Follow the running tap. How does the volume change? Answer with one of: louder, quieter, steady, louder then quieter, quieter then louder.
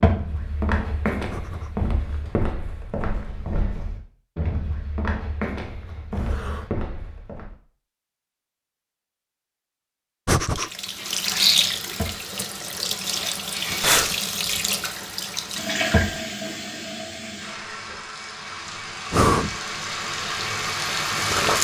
quieter then louder.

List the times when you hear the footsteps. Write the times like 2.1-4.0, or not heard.
0.0-7.5.